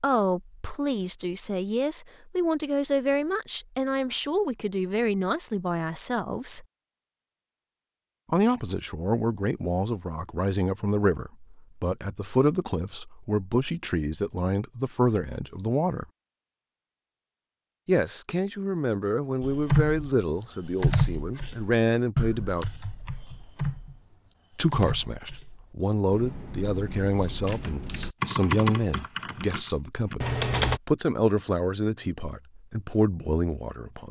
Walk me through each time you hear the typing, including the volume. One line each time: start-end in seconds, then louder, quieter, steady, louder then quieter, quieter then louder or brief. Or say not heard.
19.4-30.8 quieter then louder.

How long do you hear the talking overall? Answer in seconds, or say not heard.
29 s.